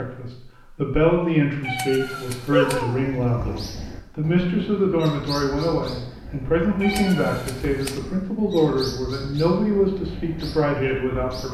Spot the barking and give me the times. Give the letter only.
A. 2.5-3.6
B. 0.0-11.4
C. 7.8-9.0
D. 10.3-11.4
A.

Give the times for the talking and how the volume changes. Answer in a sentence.
You can hear the talking from 0.0 to 11.4 s, at a steady volume.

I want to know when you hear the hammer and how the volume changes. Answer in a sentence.
You can't hear the hammer here.